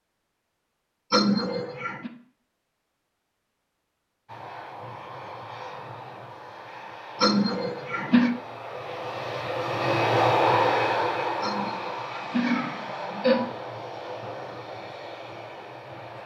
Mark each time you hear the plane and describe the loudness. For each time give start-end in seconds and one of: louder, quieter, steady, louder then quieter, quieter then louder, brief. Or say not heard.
4.2-16.2 louder then quieter.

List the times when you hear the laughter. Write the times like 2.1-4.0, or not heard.
1.1-2.1, 7.2-8.3, 11.4-13.6.